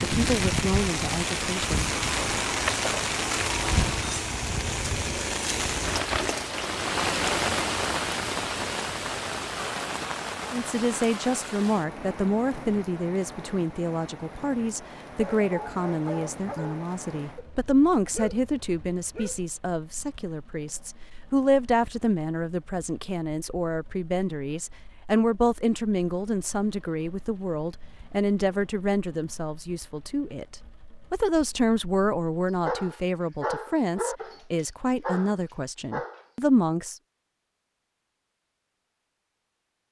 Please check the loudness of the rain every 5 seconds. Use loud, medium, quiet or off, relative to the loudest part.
loud, loud, medium, quiet, quiet, quiet, quiet, off.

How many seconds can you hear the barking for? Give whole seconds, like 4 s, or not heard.
8 s.